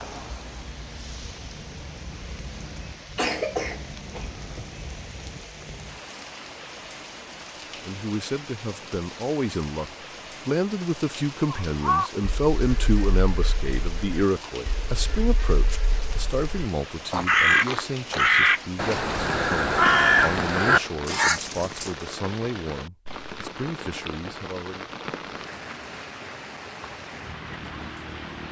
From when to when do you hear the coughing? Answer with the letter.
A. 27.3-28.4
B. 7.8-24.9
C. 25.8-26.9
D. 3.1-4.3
D.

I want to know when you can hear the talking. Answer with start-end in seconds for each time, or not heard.
7.8-24.9.